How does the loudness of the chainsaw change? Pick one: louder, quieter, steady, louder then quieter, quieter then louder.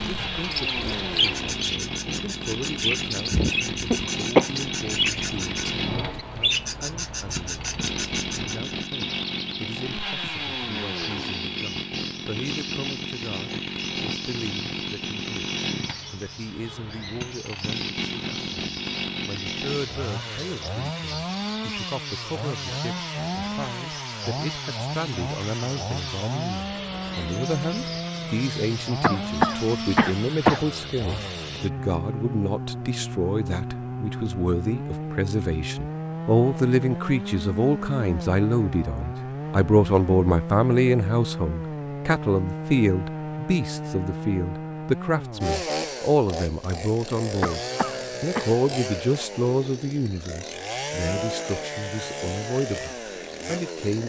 steady.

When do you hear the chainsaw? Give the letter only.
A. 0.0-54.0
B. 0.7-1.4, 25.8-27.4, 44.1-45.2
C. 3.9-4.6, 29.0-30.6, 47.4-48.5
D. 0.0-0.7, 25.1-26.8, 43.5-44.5
A.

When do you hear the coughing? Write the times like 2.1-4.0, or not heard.
3.9-4.6, 29.0-30.6, 47.4-48.5.